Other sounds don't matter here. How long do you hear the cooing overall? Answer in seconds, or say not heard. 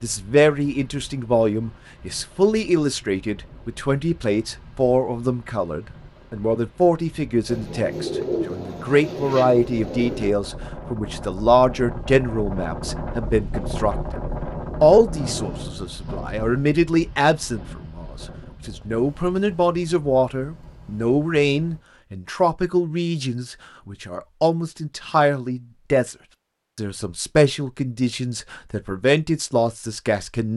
3 s.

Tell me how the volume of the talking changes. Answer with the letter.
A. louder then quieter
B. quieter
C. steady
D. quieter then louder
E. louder
C.